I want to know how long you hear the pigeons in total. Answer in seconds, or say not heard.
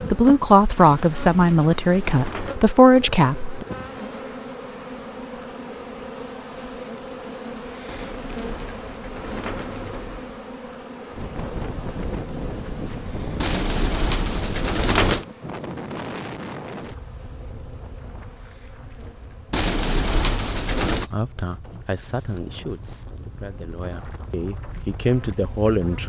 8 s.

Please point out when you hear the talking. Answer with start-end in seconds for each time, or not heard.
0.1-3.6, 20.9-26.0.